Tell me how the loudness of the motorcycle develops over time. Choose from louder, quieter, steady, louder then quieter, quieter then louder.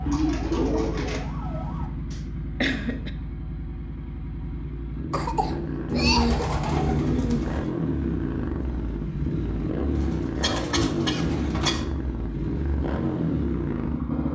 louder.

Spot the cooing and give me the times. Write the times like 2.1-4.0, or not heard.
0.1-1.2, 5.8-7.7, 9.9-11.7.